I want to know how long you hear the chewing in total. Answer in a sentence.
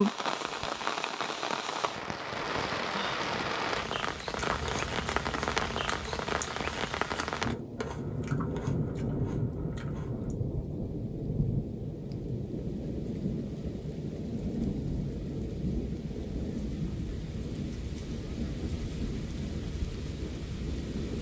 You can hear the chewing for 6 seconds altogether.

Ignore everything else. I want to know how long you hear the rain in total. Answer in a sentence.
The rain can be heard for 21 seconds in total.